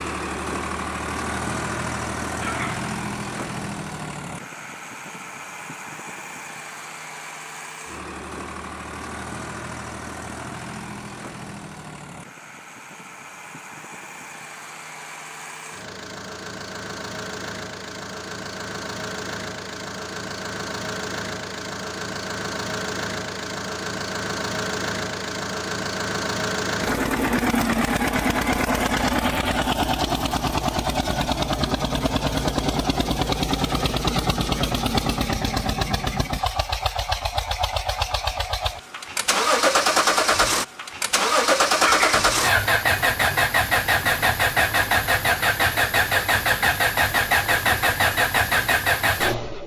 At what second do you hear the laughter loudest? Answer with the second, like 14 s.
42 s.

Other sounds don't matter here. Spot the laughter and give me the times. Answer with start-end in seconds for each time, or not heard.
2.4-2.9, 41.8-42.3.